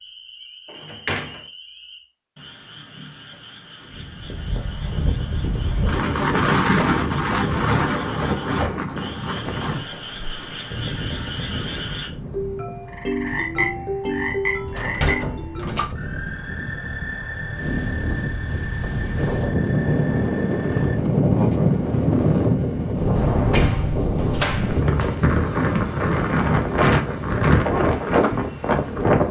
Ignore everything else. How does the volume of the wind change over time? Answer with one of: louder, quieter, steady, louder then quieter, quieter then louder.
quieter then louder.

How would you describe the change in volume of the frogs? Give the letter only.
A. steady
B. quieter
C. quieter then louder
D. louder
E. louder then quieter
E.